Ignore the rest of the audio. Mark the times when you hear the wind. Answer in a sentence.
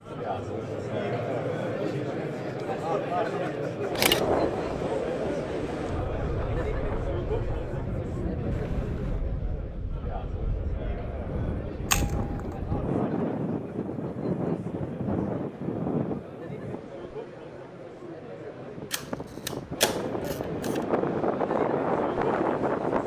You can hear the wind from 3.9 to 23.0 s.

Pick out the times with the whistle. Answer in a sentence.
You can't hear the whistle here.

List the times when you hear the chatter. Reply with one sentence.
You can hear the chatter from 0.0 to 23.0 s.